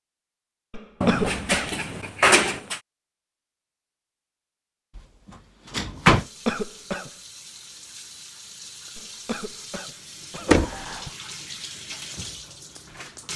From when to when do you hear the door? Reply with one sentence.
You can hear the door from 1.0 to 2.8 s, from 5.7 to 6.2 s and from 10.4 to 11.1 s.